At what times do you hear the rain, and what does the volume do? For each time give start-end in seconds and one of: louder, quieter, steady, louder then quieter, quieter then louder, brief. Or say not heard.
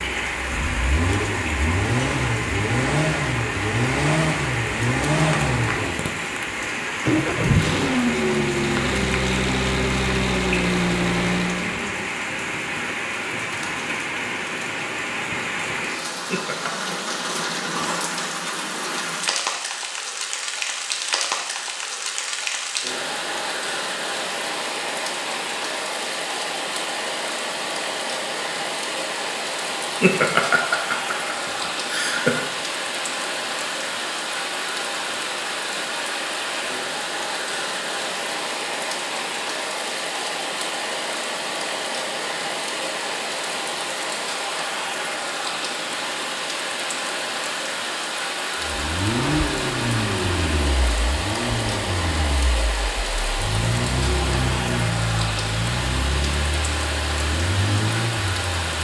0.0-58.7 steady.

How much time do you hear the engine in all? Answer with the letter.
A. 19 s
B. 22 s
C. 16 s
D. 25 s
B.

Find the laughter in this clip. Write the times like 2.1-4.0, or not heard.
16.1-16.9, 29.8-32.5.